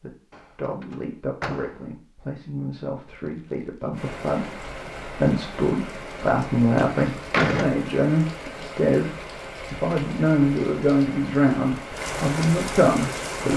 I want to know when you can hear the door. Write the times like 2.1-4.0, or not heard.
0.3-1.8, 6.8-7.8.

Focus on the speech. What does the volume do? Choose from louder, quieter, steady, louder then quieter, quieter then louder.
louder.